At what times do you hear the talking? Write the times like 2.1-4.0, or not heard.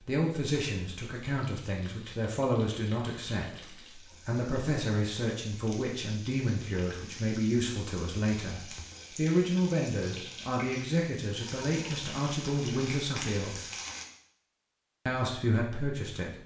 0.0-13.7, 15.1-16.4.